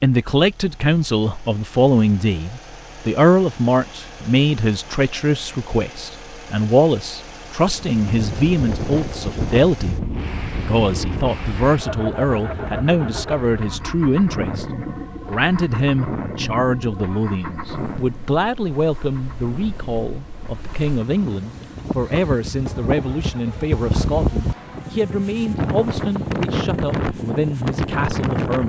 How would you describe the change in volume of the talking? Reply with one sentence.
The loudness of the talking goes down.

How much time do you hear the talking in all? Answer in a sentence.
The talking can be heard for 28 seconds in total.